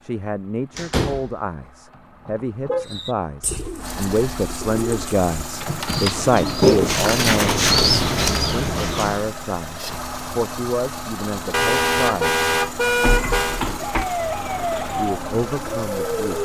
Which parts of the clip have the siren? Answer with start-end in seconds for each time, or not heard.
13.8-16.4.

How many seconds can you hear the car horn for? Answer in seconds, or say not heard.
3 s.